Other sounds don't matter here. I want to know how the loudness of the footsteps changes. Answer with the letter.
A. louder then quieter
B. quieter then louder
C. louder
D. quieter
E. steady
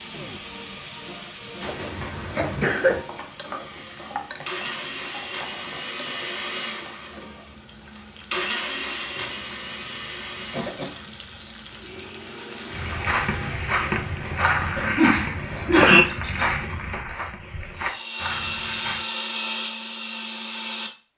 D.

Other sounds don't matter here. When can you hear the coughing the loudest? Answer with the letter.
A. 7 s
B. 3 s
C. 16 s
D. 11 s
C.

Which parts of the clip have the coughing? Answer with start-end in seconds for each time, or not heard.
1.6-3.0, 10.5-11.1, 14.8-16.1.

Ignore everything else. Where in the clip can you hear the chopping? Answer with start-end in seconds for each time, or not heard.
not heard.